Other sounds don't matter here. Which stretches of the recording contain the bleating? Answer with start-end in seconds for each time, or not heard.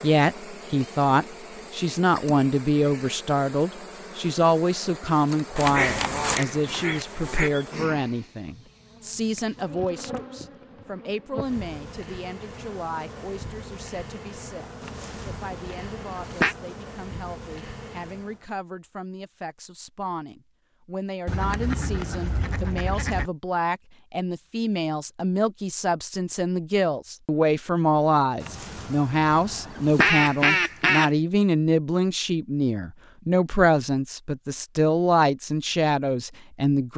not heard.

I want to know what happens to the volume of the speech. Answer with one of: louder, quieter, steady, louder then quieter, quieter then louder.
quieter then louder.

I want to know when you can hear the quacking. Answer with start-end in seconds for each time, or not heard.
5.5-7.5, 14.8-16.6, 21.2-23.3, 28.4-31.1.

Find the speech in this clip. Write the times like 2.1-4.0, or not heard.
0.0-36.9.